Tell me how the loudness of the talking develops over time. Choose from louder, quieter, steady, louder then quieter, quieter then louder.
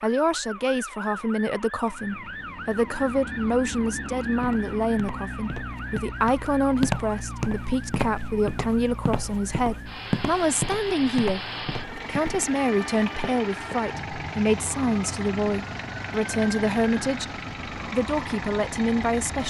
steady.